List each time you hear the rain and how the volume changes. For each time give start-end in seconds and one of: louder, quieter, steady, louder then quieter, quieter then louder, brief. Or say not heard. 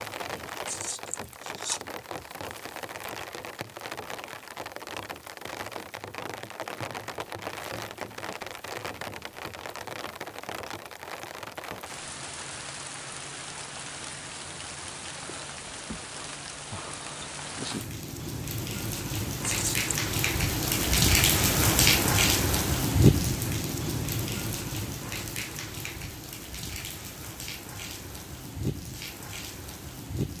0.0-30.3 louder then quieter.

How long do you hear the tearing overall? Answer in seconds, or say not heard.
2 s.